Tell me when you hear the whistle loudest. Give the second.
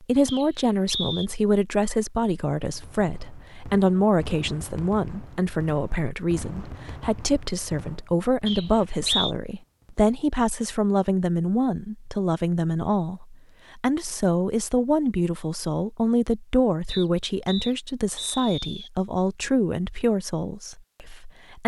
9 s.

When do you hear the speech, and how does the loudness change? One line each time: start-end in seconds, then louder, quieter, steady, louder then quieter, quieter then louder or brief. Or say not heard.
0.0-21.6 steady.